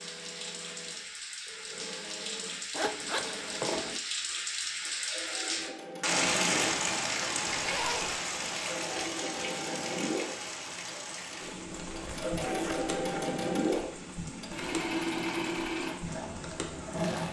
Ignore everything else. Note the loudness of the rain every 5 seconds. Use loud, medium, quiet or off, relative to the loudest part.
medium, loud, medium, medium.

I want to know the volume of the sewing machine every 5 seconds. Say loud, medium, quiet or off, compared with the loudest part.
quiet, medium, loud, loud.